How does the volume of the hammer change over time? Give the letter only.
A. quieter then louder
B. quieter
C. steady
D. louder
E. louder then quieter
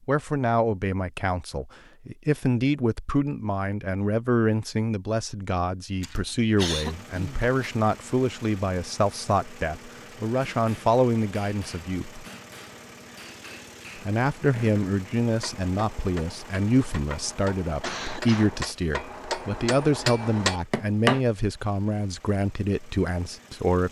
D.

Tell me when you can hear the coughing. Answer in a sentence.
The coughing can be heard from 6.0 to 7.5 s and from 17.8 to 18.6 s.